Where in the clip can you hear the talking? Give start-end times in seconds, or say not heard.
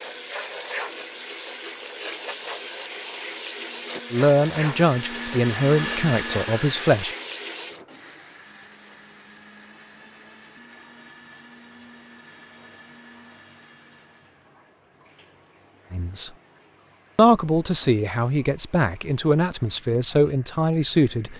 4.1-7.2, 15.9-16.3, 17.1-21.3.